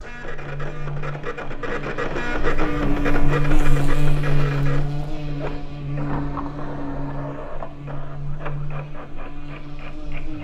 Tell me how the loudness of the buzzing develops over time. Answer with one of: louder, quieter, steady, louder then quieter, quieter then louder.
louder then quieter.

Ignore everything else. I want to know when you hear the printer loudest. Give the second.
3 s.